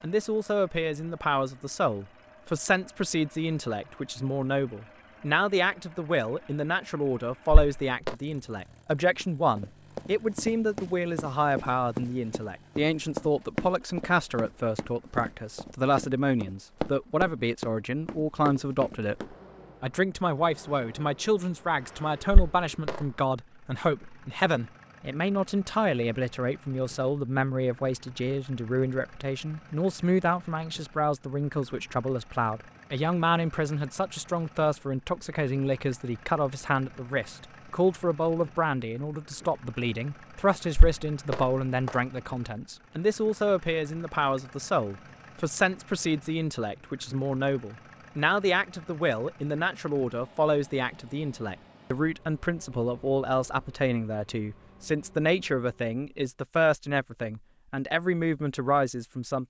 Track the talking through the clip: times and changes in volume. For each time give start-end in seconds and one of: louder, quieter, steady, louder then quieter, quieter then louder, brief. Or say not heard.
0.0-59.4 steady.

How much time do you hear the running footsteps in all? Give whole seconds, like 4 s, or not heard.
10 s.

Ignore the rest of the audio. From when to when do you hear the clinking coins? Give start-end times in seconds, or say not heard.
7.5-8.2, 22.3-23.1, 40.8-42.0.